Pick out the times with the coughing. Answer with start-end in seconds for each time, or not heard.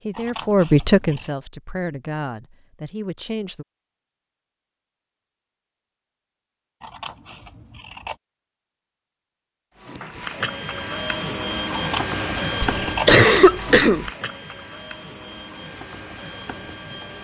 12.6-14.1.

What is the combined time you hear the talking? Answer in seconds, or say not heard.
4 s.